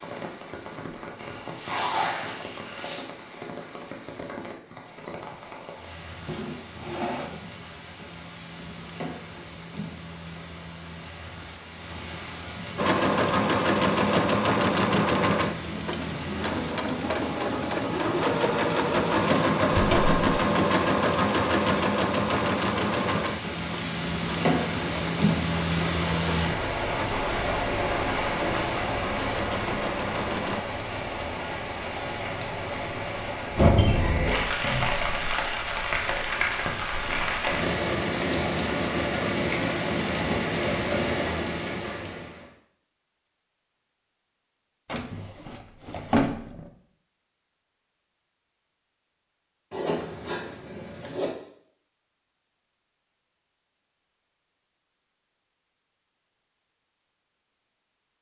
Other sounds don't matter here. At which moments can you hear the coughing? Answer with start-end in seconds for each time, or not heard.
not heard.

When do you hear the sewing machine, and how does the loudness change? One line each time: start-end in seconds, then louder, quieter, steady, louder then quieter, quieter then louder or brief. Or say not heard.
12.8-30.6 quieter.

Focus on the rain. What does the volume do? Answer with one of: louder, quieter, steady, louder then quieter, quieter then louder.
louder.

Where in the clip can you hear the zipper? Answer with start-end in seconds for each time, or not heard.
1.1-3.0, 49.7-51.3.